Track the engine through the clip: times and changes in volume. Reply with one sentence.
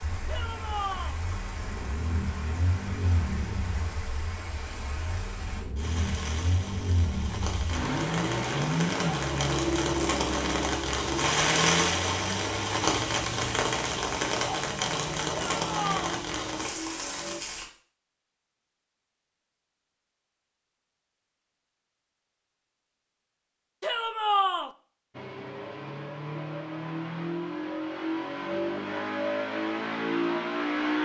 The engine can be heard from 0.0 to 17.4 s, getting louder then quieter; and from 25.1 to 31.0 s, getting louder.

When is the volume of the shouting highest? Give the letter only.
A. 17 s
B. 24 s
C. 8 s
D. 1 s
B.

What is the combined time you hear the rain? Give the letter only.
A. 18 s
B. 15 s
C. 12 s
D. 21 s
A.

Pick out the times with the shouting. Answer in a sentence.
You can hear the shouting from 0.2 to 1.1 s, from 15.6 to 16.2 s and from 23.8 to 24.7 s.